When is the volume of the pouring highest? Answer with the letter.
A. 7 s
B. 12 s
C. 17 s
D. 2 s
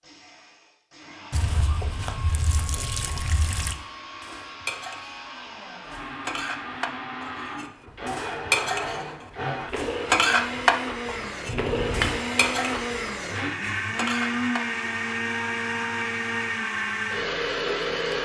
B.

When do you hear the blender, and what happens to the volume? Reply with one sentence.
You can hear the blender from 0.0 to 18.2 s, getting louder.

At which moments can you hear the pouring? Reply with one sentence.
You can hear the pouring from 1.3 to 3.8 s and from 11.4 to 12.2 s.